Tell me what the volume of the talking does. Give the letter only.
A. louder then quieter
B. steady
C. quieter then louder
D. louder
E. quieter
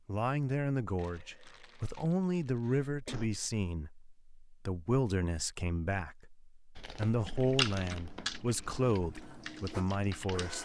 B.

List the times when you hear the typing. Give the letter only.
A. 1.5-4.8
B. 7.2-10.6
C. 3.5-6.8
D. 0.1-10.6
B.